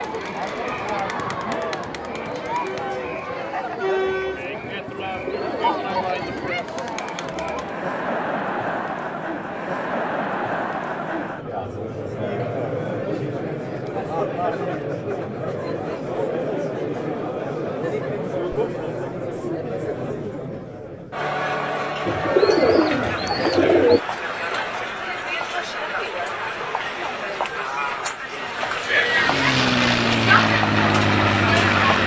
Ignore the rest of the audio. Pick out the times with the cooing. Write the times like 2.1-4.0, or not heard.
5.0-6.5, 22.1-24.0.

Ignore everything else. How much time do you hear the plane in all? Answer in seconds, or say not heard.
3 s.